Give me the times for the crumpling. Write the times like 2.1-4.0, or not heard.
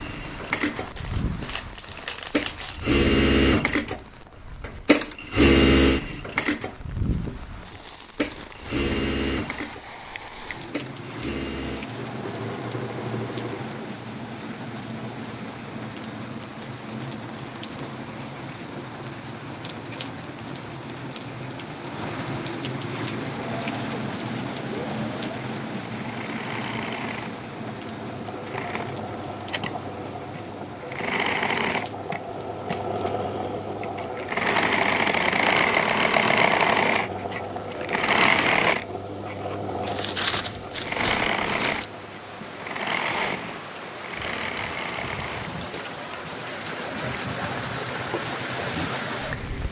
0.9-2.9, 39.9-41.9.